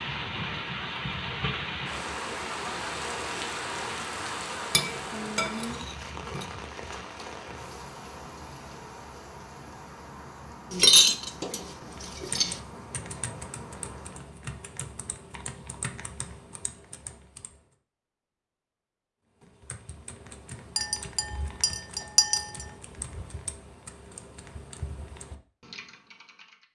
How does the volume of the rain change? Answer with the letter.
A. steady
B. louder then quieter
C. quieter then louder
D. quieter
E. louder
D.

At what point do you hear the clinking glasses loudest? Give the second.
11 s.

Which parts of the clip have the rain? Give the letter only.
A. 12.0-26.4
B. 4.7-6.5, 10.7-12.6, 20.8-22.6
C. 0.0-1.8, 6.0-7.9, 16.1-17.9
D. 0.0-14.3
D.